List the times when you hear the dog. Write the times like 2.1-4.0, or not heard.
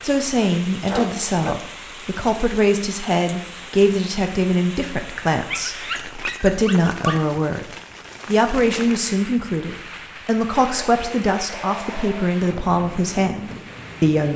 0.3-1.6, 5.5-7.2, 10.6-12.3.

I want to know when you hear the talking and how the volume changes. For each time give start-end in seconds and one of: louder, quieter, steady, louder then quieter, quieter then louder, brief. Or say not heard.
0.0-14.3 steady.